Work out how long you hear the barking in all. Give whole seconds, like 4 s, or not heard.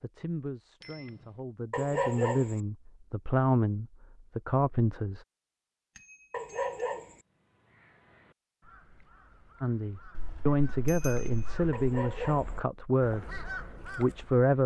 3 s.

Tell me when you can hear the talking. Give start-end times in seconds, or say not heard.
0.0-5.2, 9.6-14.6.